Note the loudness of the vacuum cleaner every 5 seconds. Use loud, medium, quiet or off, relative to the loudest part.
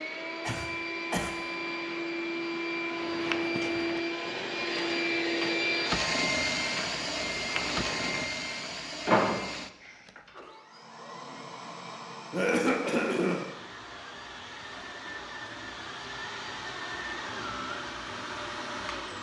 loud, loud, quiet, medium.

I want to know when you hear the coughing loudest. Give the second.
13 s.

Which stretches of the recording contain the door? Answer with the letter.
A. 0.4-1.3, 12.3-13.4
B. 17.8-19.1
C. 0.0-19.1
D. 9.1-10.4
D.